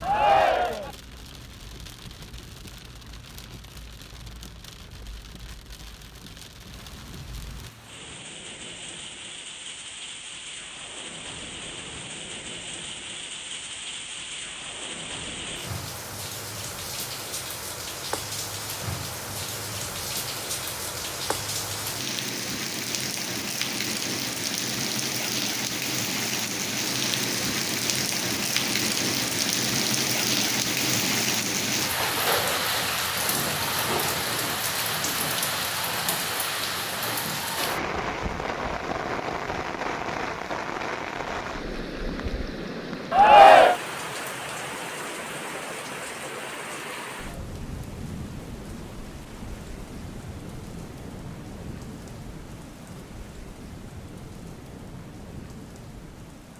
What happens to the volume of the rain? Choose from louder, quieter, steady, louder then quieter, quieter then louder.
louder then quieter.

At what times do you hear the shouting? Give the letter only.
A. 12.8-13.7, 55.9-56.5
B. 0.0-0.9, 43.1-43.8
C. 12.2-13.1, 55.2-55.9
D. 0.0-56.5
B.